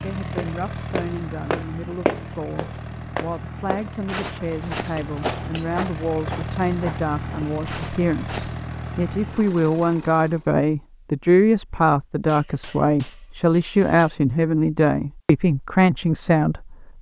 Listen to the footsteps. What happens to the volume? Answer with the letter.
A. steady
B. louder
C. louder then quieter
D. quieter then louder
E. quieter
E.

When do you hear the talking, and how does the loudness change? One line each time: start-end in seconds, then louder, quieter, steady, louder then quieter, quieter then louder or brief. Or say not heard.
0.0-16.9 louder.